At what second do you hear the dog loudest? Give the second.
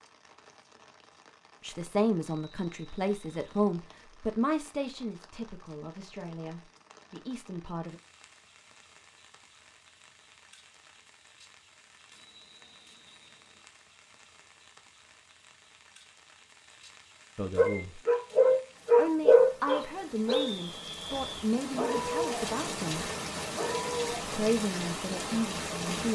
19 s.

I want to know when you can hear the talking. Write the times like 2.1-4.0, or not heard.
1.6-8.0, 17.4-18.0, 18.9-23.1, 24.2-26.0.